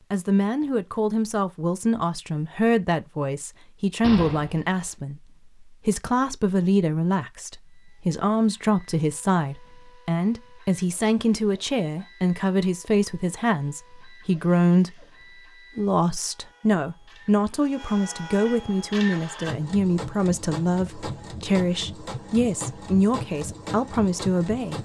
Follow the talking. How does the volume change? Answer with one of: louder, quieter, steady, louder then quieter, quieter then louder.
steady.